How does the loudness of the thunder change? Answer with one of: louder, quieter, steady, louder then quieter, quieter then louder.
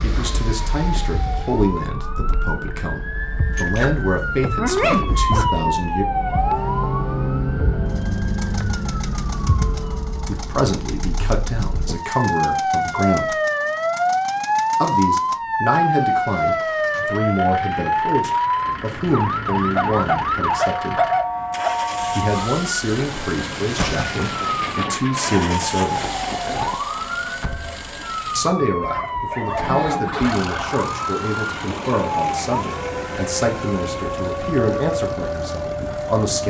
steady.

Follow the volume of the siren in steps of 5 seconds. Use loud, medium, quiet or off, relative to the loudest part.
medium, loud, loud, loud, loud, medium, medium, medium.